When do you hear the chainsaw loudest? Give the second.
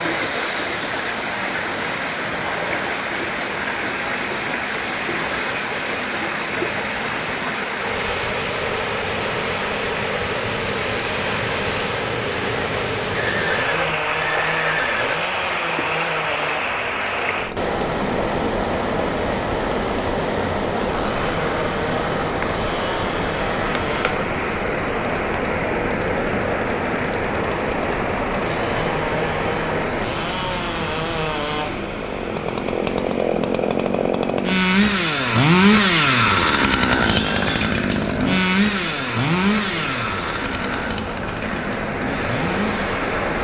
36 s.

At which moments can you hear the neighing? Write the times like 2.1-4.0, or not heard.
13.1-15.2, 37.0-37.8.